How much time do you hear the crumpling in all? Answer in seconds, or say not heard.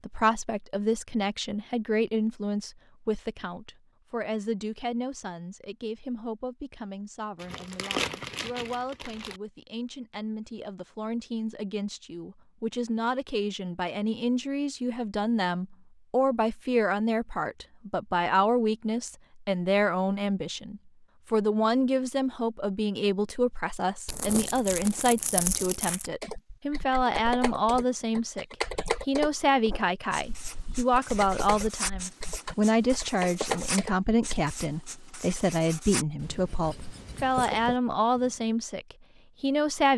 4 s.